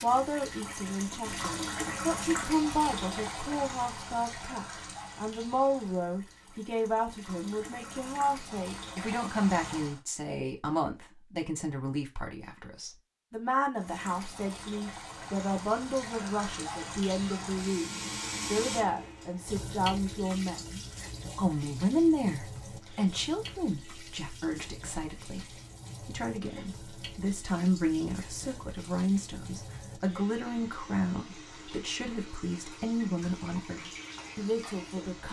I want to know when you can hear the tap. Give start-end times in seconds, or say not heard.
0.0-10.0, 13.8-35.2.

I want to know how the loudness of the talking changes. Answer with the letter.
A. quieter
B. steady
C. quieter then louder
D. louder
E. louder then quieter
B.